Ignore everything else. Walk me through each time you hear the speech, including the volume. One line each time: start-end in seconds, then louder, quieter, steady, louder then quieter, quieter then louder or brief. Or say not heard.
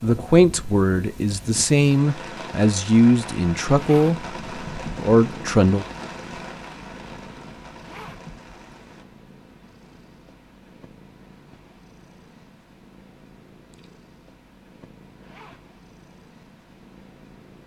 0.0-5.8 steady.